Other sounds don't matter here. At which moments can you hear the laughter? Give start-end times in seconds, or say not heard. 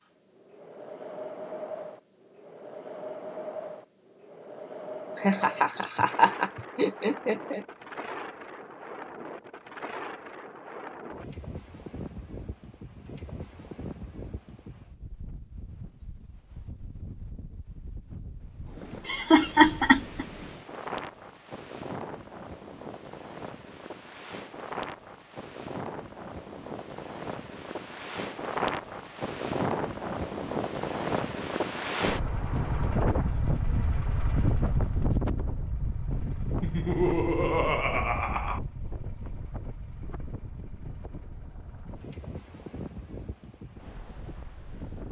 5.2-7.6, 19.1-20.2, 36.6-38.6.